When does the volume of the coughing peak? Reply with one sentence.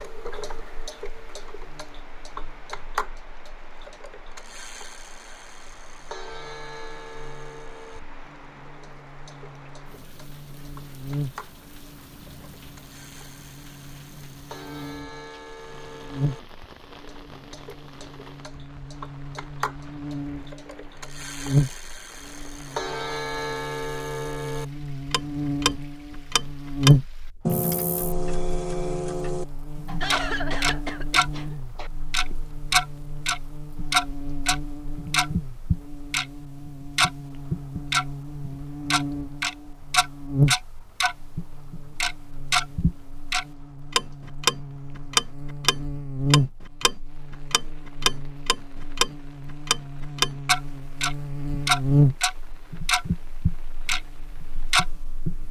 The volume of the coughing peaks at 30 seconds.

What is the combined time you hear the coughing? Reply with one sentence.
The coughing can be heard for 2 seconds in total.